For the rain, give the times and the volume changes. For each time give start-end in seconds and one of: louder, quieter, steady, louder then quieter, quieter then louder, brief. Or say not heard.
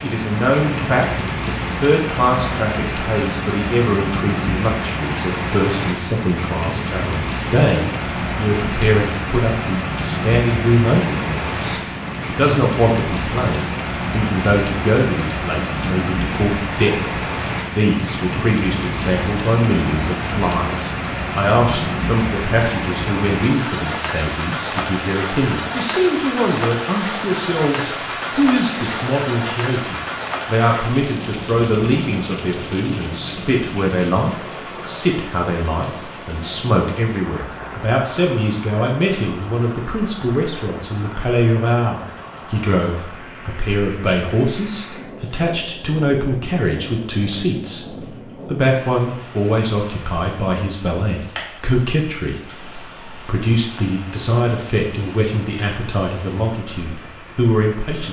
0.0-58.0 quieter.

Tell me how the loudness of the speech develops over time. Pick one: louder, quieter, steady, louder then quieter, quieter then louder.
steady.